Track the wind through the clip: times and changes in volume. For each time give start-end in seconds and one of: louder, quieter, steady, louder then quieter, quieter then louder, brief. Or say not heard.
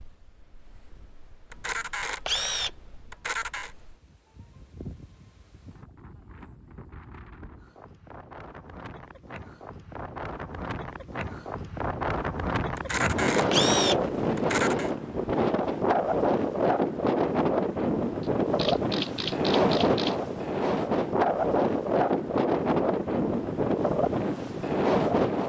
0.0-25.4 louder.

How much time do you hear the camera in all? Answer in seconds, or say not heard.
6 s.